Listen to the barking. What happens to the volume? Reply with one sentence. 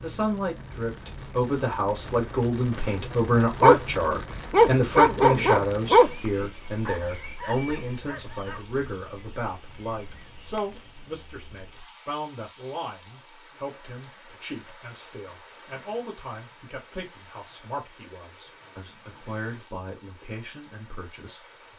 The volume of the barking goes down.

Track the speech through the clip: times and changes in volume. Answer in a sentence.
The speech can be heard from 0.0 to 21.7 s, getting quieter.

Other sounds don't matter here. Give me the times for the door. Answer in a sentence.
You can't hear the door here.